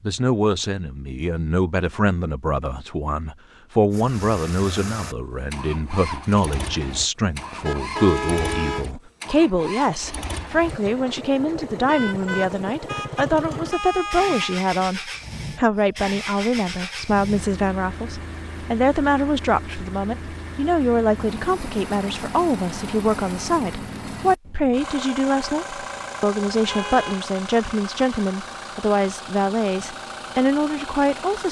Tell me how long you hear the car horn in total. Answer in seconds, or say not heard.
5 s.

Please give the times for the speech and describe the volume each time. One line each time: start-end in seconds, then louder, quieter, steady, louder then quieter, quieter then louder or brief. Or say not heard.
0.0-31.4 steady.